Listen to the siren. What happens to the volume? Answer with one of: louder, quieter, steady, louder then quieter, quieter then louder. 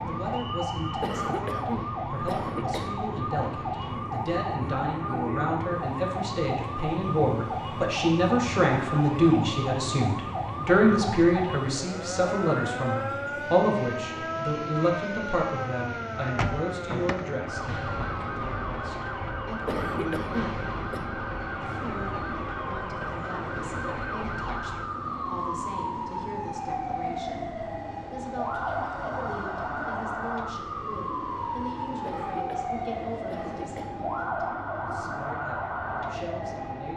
steady.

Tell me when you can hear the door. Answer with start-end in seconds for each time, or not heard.
16.2-17.3.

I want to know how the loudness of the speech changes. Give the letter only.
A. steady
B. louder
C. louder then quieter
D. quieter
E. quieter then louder
C.